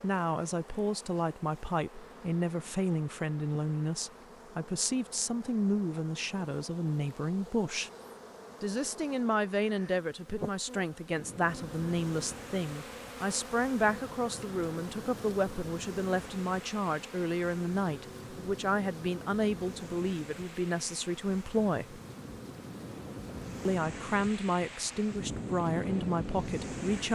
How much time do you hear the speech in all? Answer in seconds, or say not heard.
25 s.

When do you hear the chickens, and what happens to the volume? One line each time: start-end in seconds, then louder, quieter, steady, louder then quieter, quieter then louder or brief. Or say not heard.
not heard.